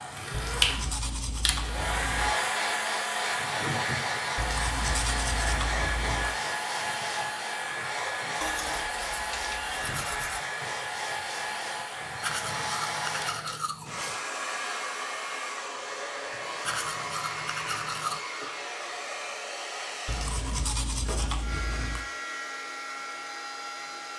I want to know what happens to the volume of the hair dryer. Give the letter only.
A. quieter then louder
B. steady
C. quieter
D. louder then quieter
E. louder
C.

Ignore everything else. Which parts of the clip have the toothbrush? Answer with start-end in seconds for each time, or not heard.
0.3-2.4, 4.3-6.3, 8.4-10.4, 12.2-14.2, 16.6-18.2, 20.1-22.1.